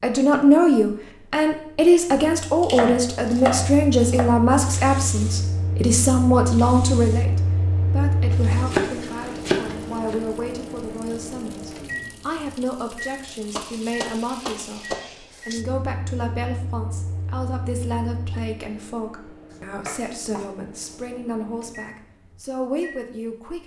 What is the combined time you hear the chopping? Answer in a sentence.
You can hear the chopping for 7 seconds altogether.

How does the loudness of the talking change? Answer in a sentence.
The volume of the talking goes down.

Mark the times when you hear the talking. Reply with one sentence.
The talking can be heard from 0.0 to 23.6 s.